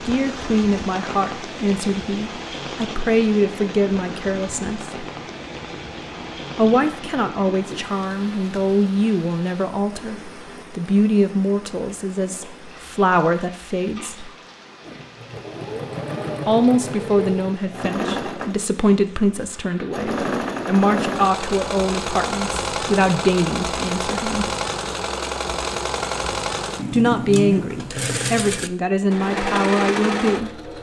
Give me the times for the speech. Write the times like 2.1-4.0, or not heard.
0.1-5.0, 6.5-14.3, 16.4-24.5, 26.9-30.5.